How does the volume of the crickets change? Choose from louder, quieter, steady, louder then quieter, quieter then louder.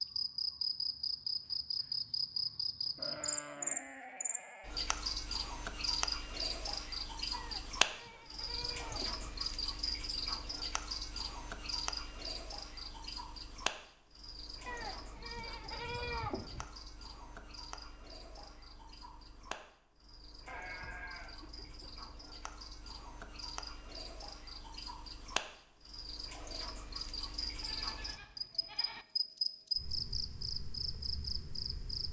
quieter then louder.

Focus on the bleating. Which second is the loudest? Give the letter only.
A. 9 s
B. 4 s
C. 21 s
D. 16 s
D.